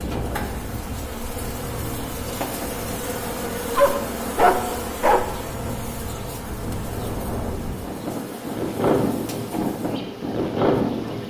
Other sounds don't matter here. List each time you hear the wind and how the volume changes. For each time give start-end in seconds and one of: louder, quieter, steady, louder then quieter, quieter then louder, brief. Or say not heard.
0.0-11.2 louder.